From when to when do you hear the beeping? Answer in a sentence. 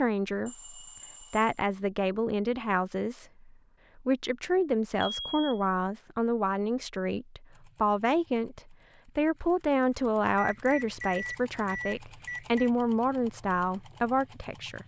The beeping can be heard from 0.5 to 1.6 s, from 5.0 to 5.6 s and from 10.3 to 12.7 s.